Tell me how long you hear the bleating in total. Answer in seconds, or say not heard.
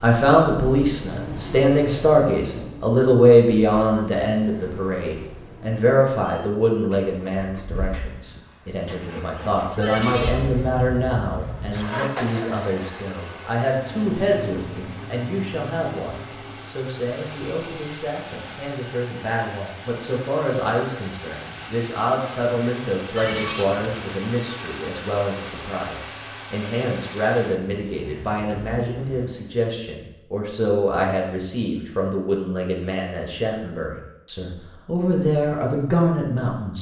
2 s.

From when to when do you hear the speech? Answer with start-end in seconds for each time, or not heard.
0.0-36.7.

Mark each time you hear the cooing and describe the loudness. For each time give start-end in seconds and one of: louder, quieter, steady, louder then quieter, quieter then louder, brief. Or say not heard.
not heard.